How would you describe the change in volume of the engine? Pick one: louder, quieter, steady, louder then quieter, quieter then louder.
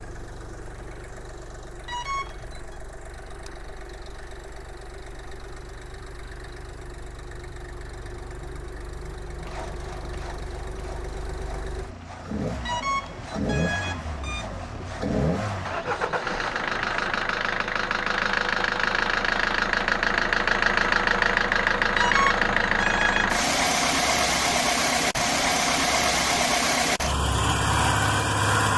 louder.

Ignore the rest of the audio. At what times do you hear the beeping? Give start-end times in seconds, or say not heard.
1.9-2.8, 12.7-14.4, 21.9-23.4.